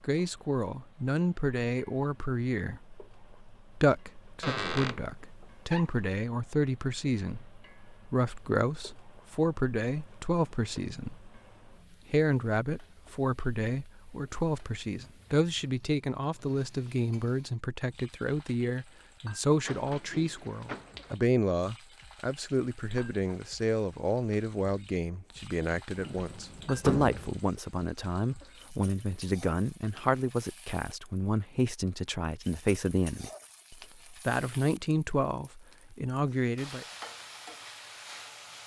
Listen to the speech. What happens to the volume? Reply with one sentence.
The loudness of the speech stays about the same.